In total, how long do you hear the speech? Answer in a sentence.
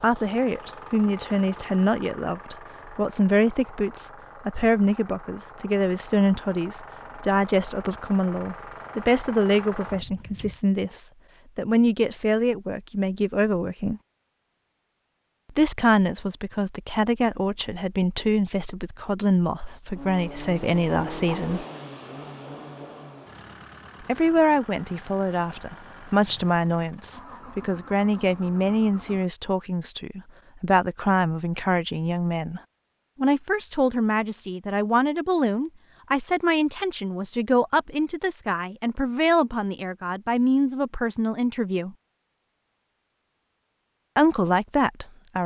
The speech can be heard for 39 seconds in total.